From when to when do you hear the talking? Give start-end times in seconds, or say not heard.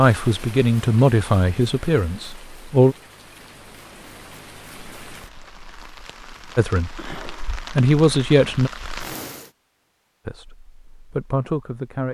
0.0-3.0, 6.5-8.7, 10.2-12.0.